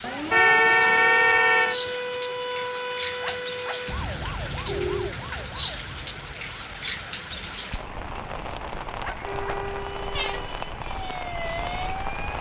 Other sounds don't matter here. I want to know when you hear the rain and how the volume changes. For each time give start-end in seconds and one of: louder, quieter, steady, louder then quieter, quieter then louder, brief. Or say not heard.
0.0-12.3 steady.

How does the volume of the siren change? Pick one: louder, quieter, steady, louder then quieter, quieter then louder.
quieter then louder.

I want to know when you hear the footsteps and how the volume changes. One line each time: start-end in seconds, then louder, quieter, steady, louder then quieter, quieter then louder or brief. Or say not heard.
not heard.